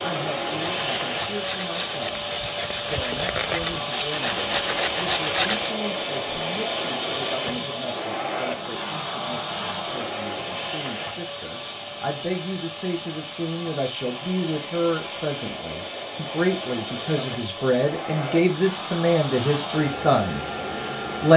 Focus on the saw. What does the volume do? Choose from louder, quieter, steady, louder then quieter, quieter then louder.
louder.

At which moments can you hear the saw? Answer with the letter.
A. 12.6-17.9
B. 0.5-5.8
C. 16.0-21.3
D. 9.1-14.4
B.